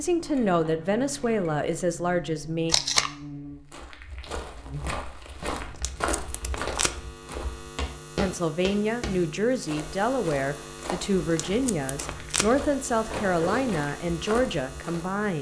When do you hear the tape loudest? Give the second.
3 s.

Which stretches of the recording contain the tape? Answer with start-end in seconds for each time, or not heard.
2.6-3.1, 5.6-7.2, 11.2-12.7.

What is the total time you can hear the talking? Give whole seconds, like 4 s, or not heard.
10 s.